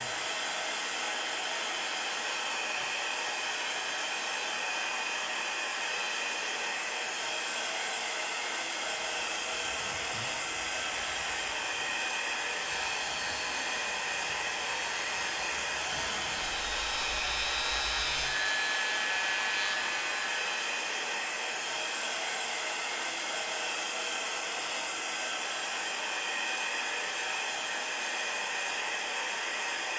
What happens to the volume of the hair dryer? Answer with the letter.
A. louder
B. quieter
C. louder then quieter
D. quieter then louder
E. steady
E.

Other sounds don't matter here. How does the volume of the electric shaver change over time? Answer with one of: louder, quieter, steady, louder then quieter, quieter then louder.
louder.